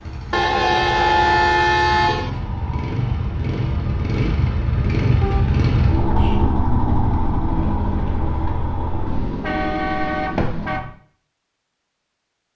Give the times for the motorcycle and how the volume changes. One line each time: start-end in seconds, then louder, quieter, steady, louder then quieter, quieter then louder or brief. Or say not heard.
0.0-10.9 louder then quieter.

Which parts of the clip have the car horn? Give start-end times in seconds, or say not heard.
0.3-2.3, 5.2-6.4, 9.1-10.8.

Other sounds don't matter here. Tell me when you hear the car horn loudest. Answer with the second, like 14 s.
1 s.